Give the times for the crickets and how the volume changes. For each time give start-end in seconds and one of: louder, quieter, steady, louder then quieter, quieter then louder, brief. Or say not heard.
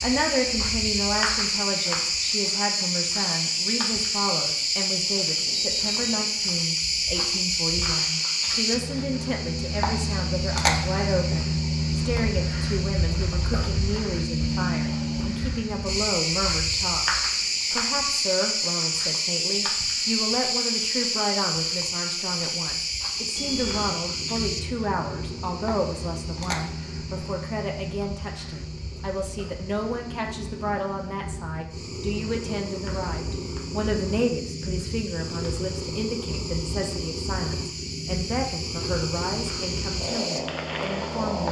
0.0-41.4 quieter.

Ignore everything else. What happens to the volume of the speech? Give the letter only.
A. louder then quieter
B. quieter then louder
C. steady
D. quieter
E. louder
C.